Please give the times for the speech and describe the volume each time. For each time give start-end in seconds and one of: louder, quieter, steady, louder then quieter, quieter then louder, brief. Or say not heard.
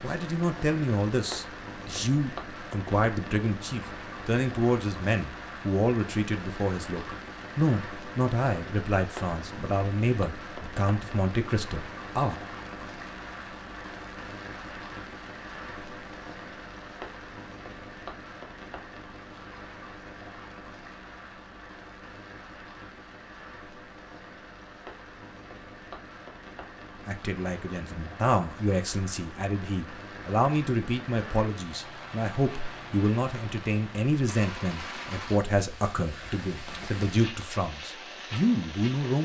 0.0-12.3 steady
27.1-39.2 steady.